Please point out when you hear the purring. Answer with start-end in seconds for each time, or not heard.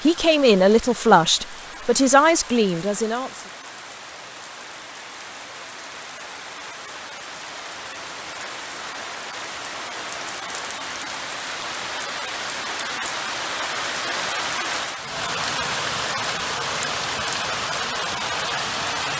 not heard.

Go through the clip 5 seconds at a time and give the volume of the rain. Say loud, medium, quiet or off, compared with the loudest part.
quiet, medium, loud, loud.